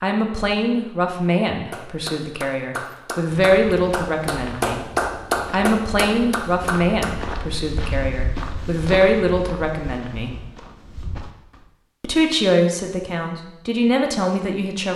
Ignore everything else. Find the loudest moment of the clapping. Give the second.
5 s.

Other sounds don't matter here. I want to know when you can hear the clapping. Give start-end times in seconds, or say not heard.
1.7-7.2.